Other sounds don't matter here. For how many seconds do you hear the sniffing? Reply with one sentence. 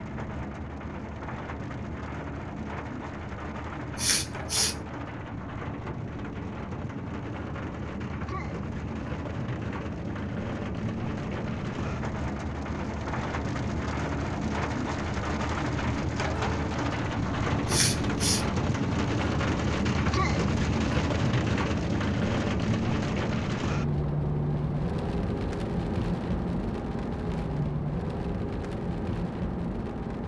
The sniffing can be heard for 2 seconds in total.